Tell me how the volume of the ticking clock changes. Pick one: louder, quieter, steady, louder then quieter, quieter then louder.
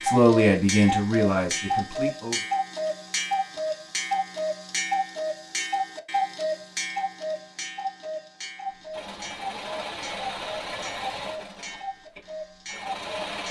quieter.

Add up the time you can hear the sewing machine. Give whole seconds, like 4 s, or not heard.
5 s.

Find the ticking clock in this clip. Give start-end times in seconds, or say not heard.
0.0-13.4.